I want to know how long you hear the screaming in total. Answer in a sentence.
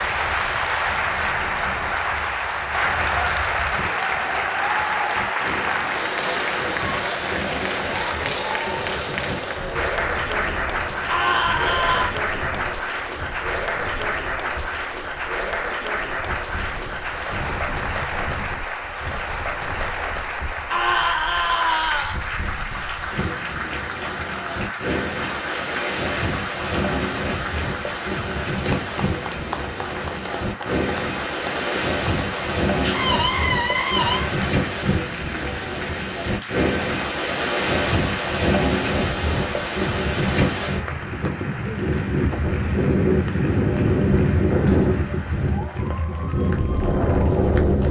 The screaming can be heard for 4 seconds in total.